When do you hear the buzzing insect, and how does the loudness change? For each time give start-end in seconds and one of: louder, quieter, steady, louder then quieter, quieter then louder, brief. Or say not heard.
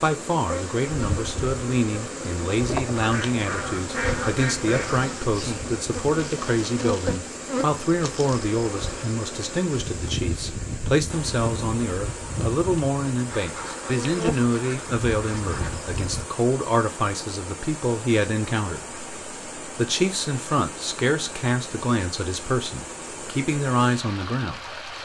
0.0-16.2 steady.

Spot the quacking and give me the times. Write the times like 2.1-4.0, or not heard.
3.0-5.2, 13.2-15.8.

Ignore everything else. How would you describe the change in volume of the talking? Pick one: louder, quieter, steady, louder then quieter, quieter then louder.
steady.